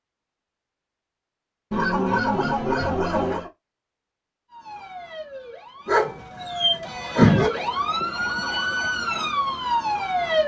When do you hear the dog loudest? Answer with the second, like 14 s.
7 s.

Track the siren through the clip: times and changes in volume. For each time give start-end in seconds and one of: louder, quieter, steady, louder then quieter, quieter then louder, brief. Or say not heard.
4.5-10.4 louder.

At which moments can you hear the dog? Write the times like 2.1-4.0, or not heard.
1.7-3.5, 5.8-7.5.